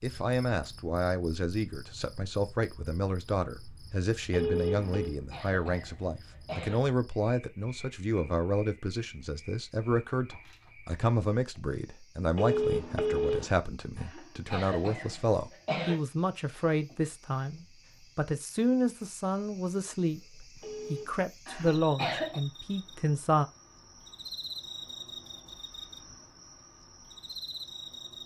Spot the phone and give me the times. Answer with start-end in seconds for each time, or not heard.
4.3-5.2, 12.3-13.5, 20.6-21.2.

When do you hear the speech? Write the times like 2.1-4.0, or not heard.
0.0-23.4.